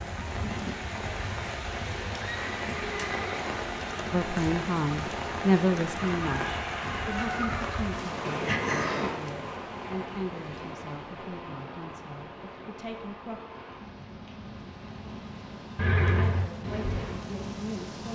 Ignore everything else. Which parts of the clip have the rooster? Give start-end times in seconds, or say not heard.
5.9-7.9.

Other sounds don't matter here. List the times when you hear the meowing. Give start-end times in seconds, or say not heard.
not heard.